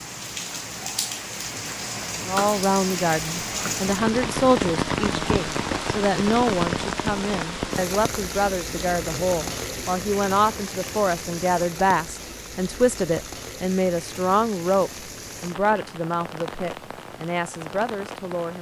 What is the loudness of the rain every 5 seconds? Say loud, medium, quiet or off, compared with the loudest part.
loud, loud, medium, medium.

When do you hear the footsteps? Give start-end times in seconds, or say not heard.
not heard.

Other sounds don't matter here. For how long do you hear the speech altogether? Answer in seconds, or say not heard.
16 s.